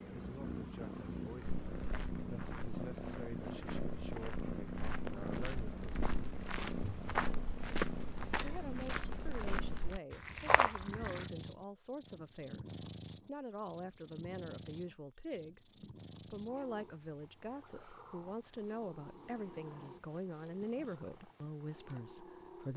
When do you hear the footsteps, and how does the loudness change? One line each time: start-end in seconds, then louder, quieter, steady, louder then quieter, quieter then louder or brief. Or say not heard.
1.4-11.3 louder.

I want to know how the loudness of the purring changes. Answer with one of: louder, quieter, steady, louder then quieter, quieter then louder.
quieter.